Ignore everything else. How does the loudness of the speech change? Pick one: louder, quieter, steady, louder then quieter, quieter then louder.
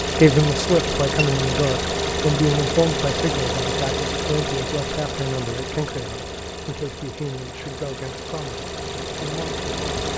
quieter.